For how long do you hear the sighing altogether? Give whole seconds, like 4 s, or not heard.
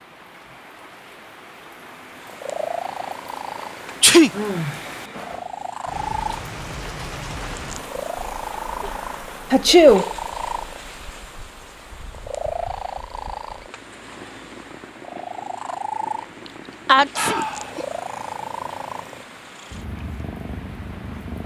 2 s.